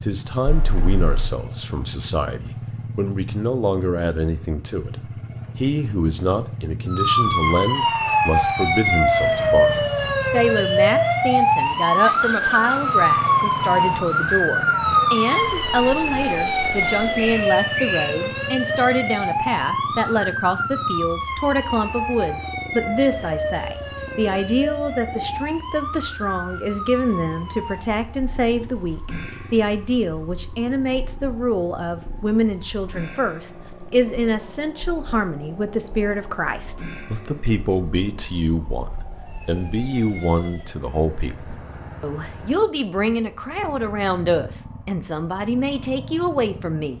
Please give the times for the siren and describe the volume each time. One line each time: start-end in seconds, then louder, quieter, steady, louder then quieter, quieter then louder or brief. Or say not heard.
6.8-40.8 quieter.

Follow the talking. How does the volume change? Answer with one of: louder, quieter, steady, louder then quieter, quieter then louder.
steady.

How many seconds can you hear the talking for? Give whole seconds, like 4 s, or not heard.
47 s.